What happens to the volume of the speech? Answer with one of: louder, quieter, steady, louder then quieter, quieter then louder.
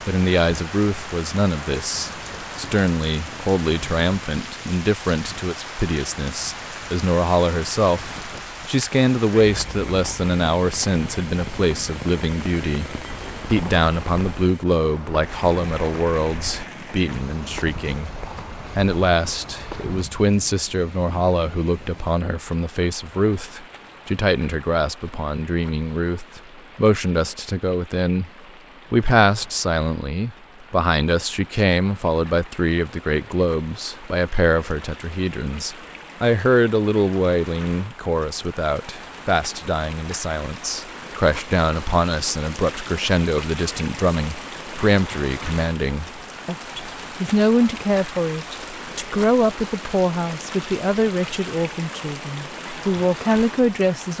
steady.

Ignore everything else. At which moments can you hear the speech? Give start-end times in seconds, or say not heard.
0.1-18.1, 18.8-28.3, 28.9-54.1.